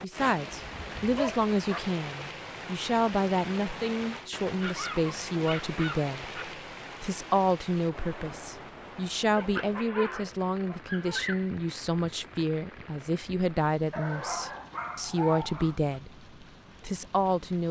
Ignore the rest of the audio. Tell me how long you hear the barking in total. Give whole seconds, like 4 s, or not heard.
7 s.